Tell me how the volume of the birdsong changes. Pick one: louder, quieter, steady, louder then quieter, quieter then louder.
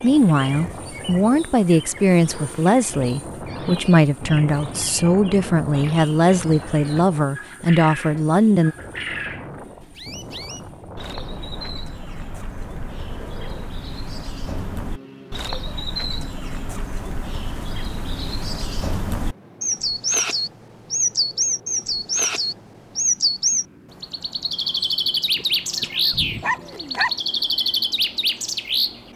louder.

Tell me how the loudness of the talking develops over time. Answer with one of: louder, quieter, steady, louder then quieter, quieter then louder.
steady.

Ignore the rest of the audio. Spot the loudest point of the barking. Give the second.
27 s.